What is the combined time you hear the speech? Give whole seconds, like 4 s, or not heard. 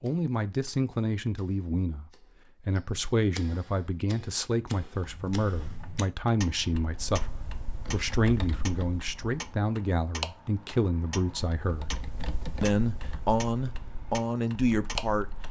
14 s.